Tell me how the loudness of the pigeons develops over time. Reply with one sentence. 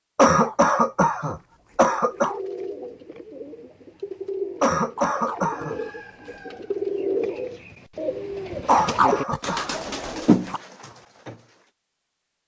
The loudness of the pigeons goes up.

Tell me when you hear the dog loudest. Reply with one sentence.
The loudest moment of the dog is at 9 seconds.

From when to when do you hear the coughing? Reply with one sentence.
You can hear the coughing from 0.1 to 2.4 s, from 4.6 to 5.8 s and from 8.7 to 9.8 s.